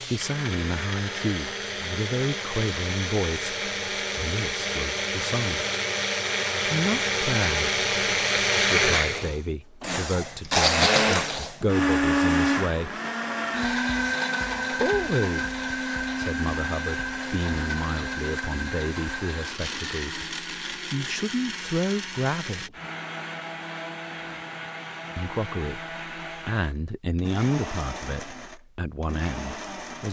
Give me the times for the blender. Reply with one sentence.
The blender can be heard from 0.0 to 30.0 s.